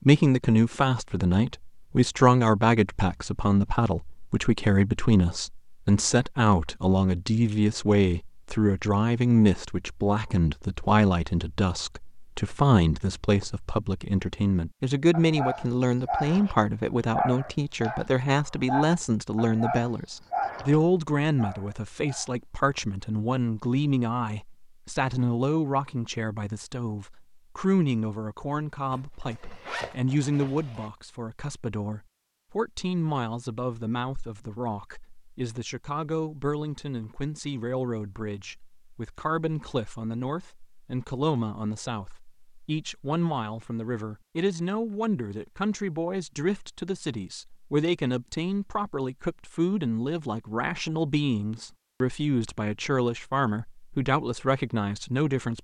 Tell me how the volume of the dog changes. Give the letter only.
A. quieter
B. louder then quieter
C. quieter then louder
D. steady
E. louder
A.